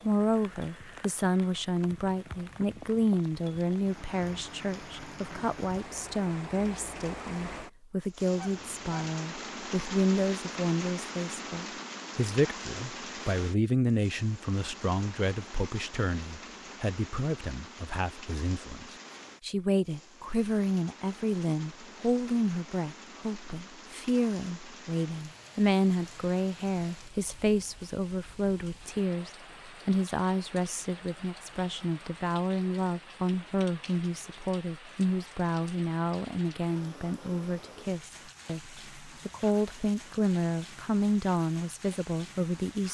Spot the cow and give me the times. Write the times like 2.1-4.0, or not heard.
not heard.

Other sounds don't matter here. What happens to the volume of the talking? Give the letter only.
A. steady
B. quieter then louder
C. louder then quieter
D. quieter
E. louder
A.